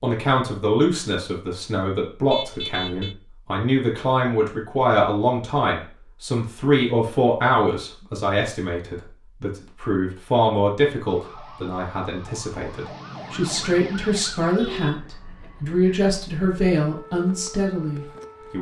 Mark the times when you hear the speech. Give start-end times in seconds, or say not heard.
0.0-18.5.